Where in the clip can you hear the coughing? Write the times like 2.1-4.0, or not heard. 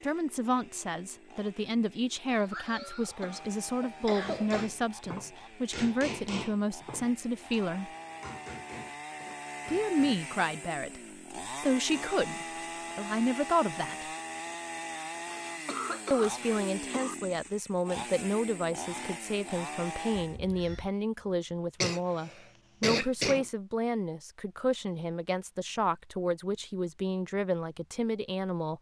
2.2-4.7, 15.2-17.1, 21.8-23.4.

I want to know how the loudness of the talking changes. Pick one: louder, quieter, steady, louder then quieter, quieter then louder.
steady.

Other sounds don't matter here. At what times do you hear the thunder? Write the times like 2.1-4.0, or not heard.
not heard.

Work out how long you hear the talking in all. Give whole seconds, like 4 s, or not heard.
25 s.